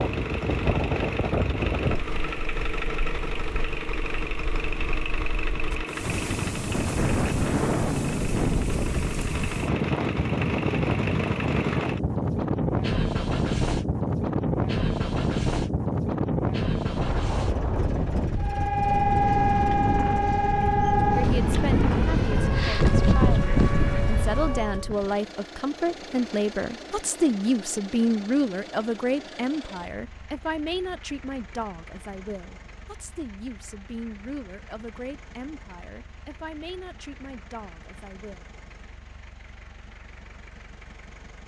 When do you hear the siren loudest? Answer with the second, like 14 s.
19 s.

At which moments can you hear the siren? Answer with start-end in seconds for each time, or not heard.
18.4-24.9.